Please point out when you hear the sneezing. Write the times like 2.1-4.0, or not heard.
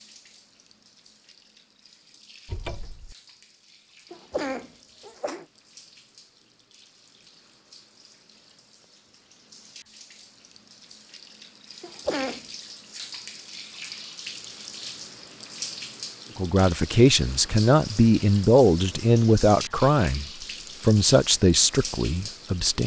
4.1-5.5, 11.8-12.4.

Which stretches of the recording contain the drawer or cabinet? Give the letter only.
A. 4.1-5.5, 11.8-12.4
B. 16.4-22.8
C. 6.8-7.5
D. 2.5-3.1
D.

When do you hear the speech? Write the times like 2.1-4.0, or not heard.
16.4-22.8.